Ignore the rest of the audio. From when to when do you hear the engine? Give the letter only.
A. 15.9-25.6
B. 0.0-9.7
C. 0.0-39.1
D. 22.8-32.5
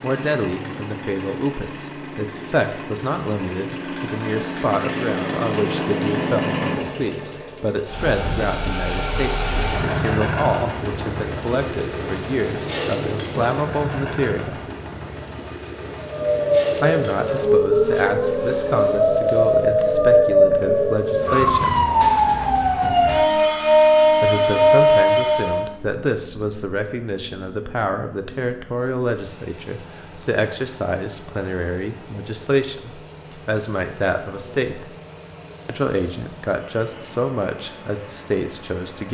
C.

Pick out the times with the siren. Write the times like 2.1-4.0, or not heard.
15.9-25.6.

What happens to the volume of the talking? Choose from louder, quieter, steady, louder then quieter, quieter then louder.
steady.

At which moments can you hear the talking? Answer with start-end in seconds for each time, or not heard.
0.0-14.6, 16.8-21.8, 24.2-35.0, 35.6-39.1.